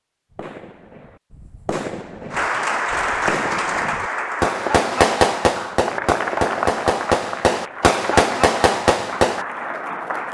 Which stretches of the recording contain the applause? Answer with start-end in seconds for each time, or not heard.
2.3-10.2.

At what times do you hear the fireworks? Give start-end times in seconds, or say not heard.
0.3-9.4.